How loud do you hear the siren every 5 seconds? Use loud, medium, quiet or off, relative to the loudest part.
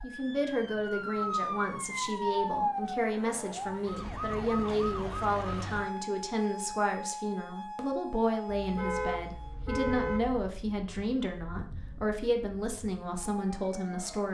loud, medium, quiet.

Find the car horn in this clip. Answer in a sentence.
The car horn can be heard from 8.4 to 10.5 s.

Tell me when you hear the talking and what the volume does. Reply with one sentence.
The talking can be heard from 0.0 to 14.2 s, at a steady volume.